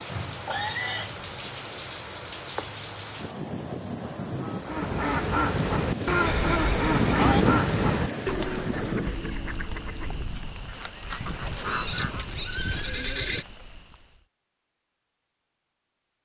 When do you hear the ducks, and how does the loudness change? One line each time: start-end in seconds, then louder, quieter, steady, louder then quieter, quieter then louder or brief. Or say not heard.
4.6-12.2 quieter.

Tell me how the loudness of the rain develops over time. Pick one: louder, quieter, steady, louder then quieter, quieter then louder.
louder then quieter.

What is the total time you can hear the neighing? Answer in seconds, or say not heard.
4 s.